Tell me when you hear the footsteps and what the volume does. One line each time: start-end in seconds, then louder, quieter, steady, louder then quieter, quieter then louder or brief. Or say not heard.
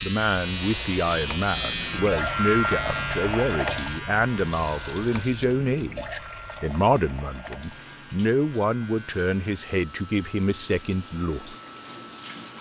not heard.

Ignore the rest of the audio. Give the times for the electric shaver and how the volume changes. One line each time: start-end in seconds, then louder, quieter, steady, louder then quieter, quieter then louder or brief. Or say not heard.
0.0-12.3 quieter.